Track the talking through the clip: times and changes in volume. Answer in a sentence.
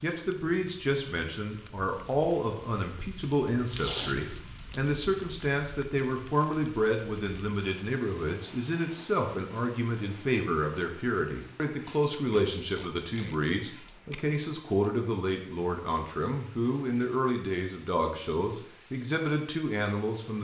The talking can be heard from 0.0 to 20.3 s, at a steady volume.